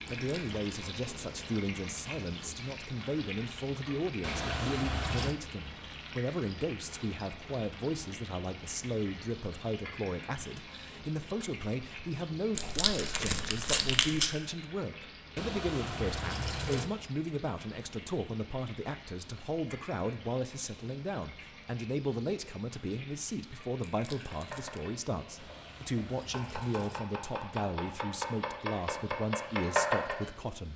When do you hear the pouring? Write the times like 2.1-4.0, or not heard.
4.2-5.3, 15.3-16.9, 25.4-27.1.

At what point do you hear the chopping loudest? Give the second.
30 s.